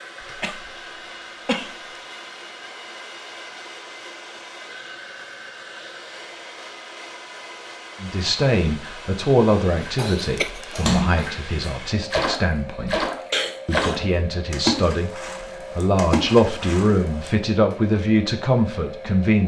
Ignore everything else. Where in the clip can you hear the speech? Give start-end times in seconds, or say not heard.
8.0-13.1, 13.7-19.4.